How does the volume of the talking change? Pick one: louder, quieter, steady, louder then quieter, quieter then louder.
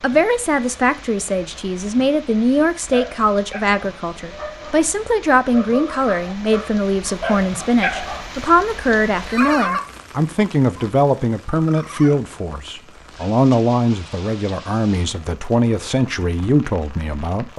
steady.